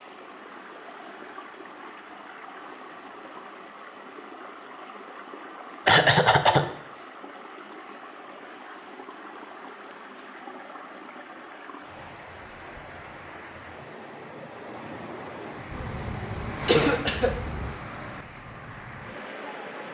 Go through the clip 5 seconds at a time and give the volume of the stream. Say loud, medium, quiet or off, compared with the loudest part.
medium, medium, medium, loud.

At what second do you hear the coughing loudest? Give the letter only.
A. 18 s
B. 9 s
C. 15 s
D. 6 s
D.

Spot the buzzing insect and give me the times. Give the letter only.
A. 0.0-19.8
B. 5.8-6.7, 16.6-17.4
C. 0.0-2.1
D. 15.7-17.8
D.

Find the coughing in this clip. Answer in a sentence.
You can hear the coughing from 5.8 to 6.7 s and from 16.6 to 17.4 s.